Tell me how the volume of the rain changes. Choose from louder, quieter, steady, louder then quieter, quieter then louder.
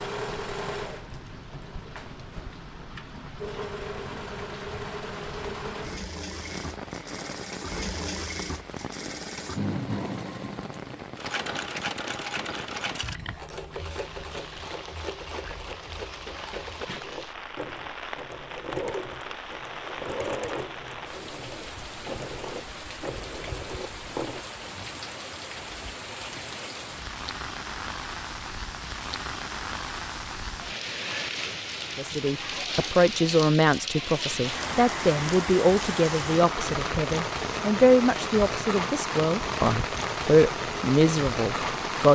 louder.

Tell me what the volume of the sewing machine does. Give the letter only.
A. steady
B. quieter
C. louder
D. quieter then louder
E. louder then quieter
A.